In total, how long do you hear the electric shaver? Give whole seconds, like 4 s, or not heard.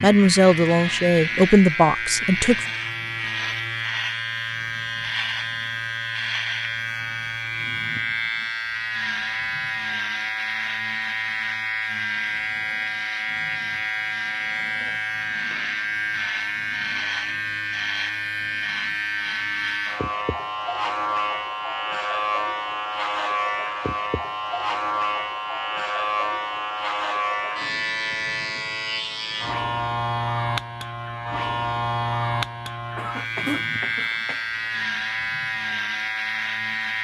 37 s.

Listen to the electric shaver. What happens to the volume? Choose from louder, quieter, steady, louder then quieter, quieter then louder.
steady.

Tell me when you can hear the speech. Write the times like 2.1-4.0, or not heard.
0.0-2.6.